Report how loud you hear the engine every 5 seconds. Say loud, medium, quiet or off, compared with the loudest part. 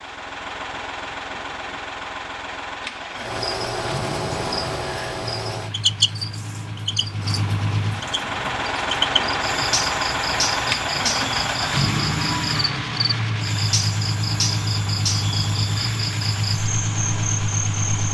medium, loud, loud, loud.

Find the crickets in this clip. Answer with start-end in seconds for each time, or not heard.
3.1-18.0.